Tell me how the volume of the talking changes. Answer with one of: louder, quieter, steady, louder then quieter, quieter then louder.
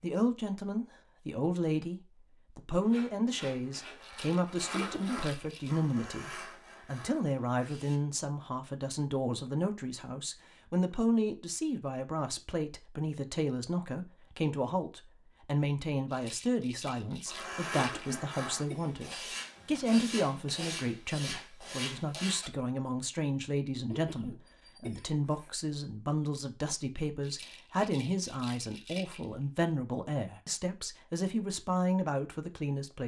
steady.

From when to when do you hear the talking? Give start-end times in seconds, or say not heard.
0.0-33.0.